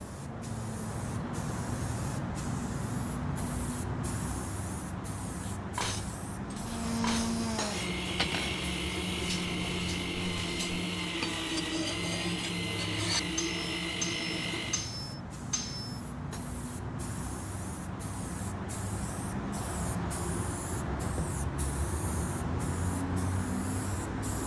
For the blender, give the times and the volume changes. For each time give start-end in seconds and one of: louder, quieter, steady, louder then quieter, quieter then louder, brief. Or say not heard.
6.5-14.9 steady.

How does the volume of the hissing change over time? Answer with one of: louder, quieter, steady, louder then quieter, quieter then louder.
quieter then louder.